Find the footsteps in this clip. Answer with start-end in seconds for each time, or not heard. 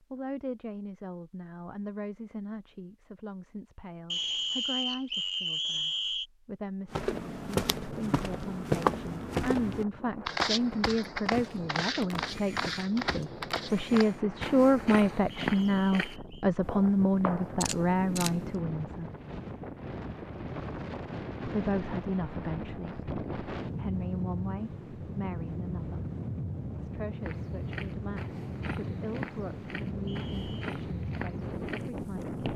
6.9-17.7, 27.2-32.5.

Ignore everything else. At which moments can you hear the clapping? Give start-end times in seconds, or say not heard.
not heard.